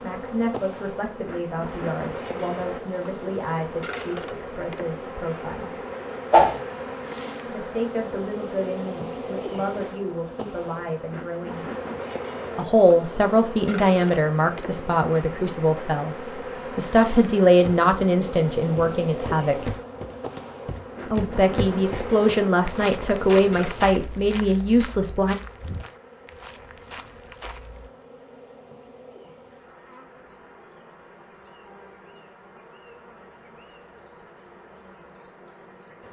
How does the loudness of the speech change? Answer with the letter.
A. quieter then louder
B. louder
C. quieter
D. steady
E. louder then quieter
B.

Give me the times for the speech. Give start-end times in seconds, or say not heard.
0.0-5.8, 7.5-11.7, 12.6-19.8, 21.1-25.4.